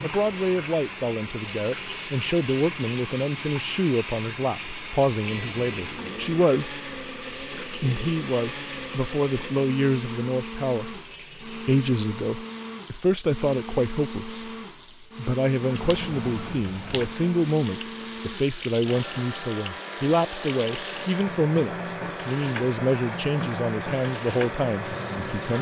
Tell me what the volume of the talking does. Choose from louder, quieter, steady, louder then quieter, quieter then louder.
steady.